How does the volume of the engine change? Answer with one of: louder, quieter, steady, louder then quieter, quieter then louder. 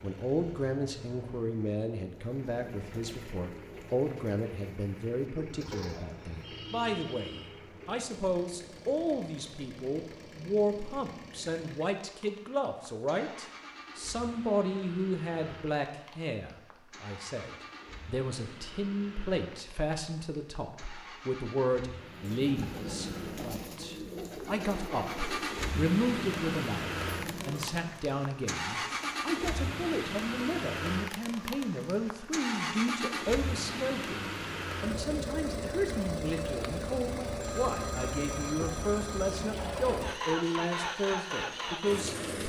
louder.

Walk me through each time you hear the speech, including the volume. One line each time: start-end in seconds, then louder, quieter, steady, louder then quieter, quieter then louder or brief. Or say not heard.
0.0-42.4 steady.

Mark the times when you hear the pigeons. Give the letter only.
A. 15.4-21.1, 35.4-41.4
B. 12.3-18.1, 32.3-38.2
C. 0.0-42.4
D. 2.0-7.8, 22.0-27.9
D.